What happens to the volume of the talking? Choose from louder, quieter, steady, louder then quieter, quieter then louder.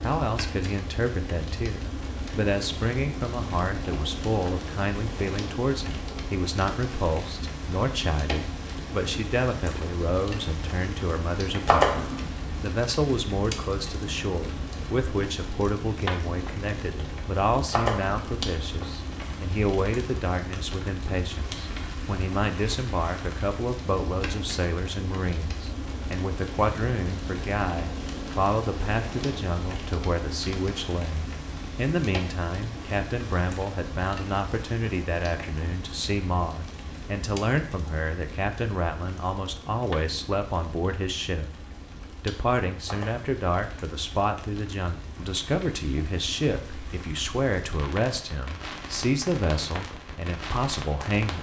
steady.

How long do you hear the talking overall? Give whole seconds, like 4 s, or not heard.
51 s.